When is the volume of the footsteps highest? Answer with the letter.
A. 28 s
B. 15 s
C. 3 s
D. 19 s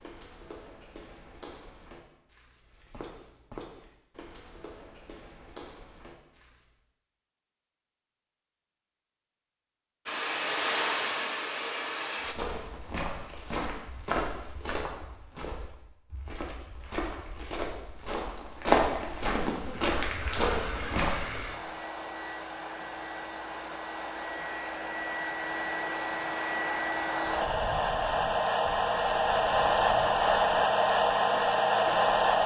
D.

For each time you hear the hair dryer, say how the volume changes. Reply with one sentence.
The hair dryer can be heard briefly from 10.1 to 12.3 s; and from 19.6 to 32.4 s, getting louder.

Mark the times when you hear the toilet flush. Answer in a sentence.
You can't hear the toilet flush here.